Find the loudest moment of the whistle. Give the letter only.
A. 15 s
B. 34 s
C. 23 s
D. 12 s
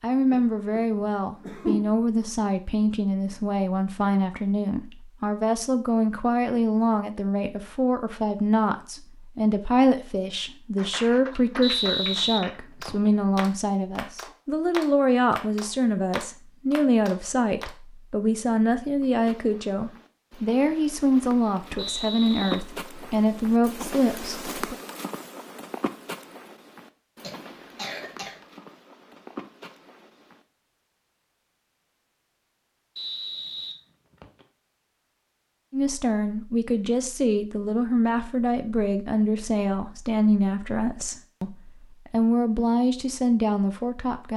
D.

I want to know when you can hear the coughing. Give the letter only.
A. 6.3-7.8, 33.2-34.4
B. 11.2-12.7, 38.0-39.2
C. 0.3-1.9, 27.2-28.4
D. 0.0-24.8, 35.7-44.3
C.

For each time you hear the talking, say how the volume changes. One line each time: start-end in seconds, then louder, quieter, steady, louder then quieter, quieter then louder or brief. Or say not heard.
0.0-24.8 steady
35.7-44.3 steady.